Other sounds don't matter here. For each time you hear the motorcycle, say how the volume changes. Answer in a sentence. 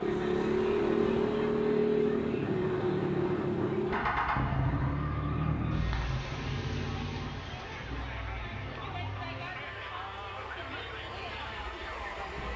The motorcycle can be heard from 0.0 to 12.5 s, getting quieter.